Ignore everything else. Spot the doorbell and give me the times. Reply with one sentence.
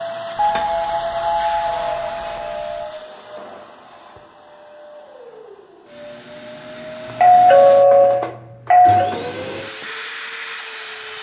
The doorbell can be heard from 0.3 to 2.9 s and from 7.2 to 9.1 s.